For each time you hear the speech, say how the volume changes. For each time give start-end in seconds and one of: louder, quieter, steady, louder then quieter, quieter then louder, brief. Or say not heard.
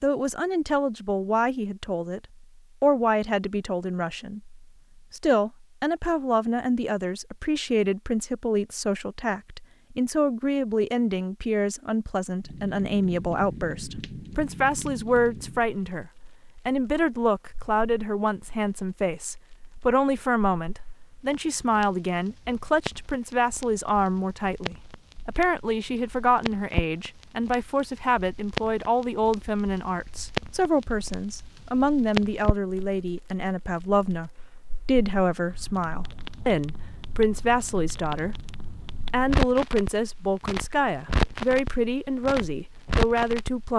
0.0-43.7 steady.